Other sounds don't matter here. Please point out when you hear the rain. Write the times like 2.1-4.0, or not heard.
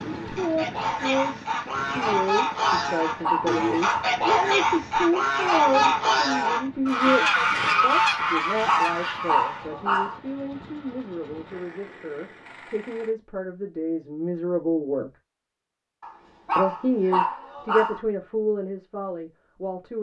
not heard.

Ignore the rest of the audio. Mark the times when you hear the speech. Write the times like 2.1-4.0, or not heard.
0.2-15.1, 16.6-19.9.